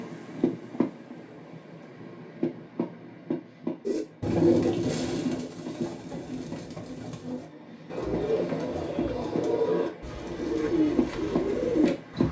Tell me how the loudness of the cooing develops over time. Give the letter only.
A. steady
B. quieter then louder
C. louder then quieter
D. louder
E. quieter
B.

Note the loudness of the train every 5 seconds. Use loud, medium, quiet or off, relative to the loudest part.
loud, medium, loud.